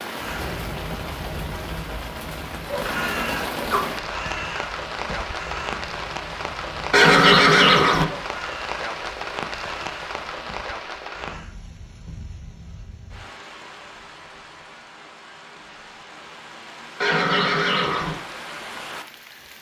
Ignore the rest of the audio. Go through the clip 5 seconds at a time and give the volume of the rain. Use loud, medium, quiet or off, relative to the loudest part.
loud, loud, medium, medium.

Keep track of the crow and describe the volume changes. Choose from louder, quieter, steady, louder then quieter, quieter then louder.
quieter.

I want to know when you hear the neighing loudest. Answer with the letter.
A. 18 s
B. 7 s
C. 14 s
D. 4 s
B.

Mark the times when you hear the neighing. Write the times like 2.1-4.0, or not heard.
2.9-3.9, 6.9-8.1, 17.0-18.1.